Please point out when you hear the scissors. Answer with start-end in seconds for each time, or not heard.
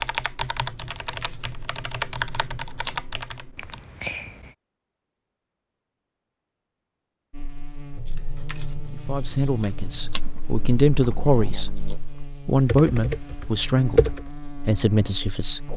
0.7-3.0, 8.0-10.2.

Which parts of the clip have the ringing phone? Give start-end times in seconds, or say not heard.
not heard.